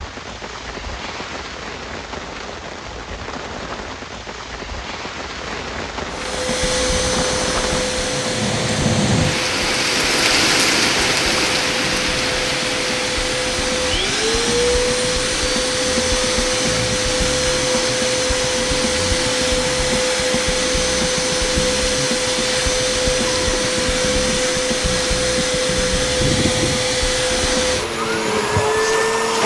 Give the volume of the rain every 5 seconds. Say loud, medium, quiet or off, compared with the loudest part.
medium, loud, loud, medium, medium, medium.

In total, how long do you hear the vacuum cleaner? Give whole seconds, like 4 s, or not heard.
23 s.